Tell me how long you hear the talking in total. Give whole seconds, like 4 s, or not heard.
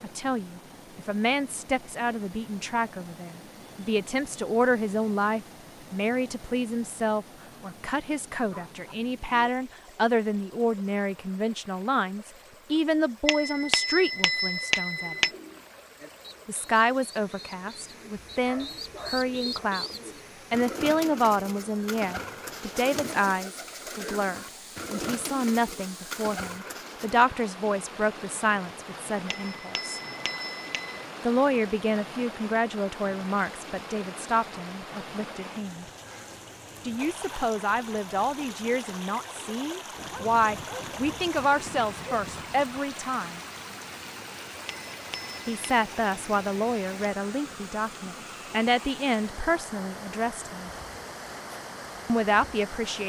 46 s.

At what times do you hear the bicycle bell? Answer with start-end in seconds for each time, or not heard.
13.2-15.3, 29.2-31.1, 44.9-45.5.